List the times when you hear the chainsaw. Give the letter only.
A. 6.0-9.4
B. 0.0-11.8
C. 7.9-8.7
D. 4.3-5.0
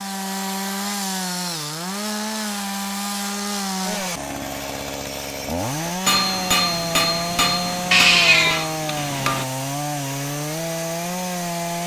B.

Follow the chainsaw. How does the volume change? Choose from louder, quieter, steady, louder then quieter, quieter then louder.
steady.